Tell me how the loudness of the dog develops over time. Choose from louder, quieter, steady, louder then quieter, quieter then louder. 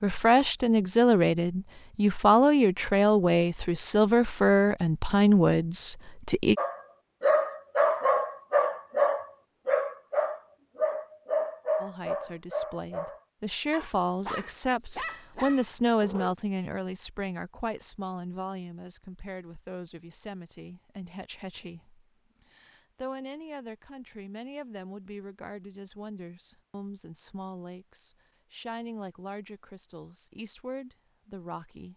quieter.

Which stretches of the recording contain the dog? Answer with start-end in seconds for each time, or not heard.
6.5-16.4.